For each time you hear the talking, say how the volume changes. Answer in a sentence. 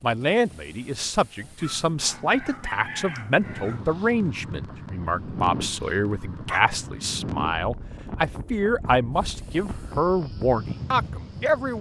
You can hear the talking from 0.0 to 11.7 s, at a steady volume.